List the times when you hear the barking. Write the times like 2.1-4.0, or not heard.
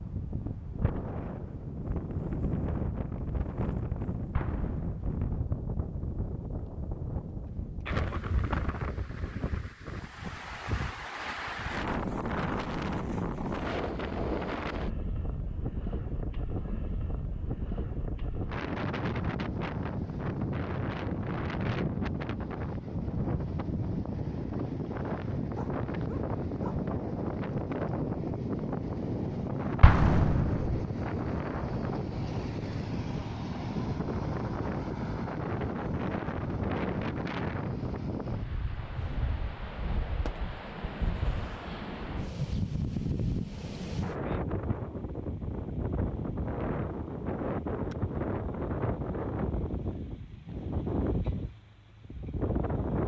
25.6-26.8.